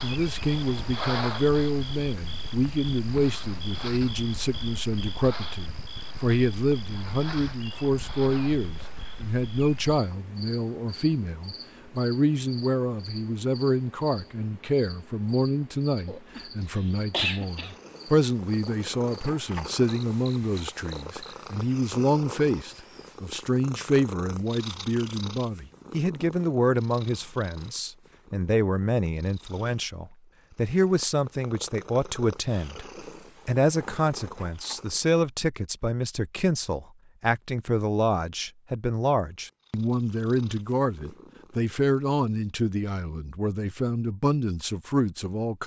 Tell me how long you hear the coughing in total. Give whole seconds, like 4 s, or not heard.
2 s.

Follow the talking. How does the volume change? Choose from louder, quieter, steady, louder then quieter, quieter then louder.
steady.